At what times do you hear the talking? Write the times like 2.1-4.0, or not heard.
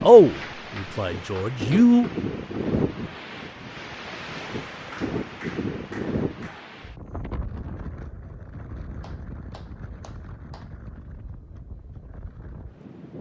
0.0-2.1.